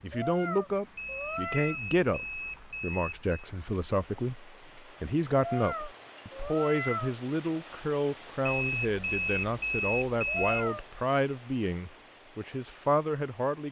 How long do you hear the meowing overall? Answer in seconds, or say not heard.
4 s.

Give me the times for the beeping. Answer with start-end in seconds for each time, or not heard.
0.9-3.4, 8.4-10.7.